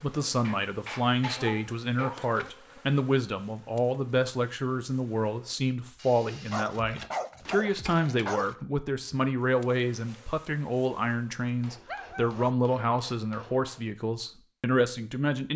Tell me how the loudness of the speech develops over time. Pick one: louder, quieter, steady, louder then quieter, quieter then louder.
steady.